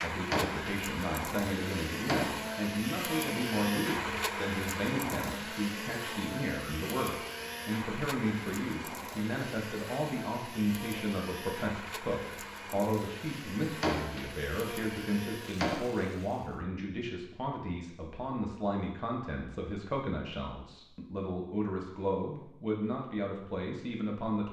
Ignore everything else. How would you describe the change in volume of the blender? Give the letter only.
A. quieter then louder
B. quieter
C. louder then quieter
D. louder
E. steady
B.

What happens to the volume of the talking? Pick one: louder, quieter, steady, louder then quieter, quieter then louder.
steady.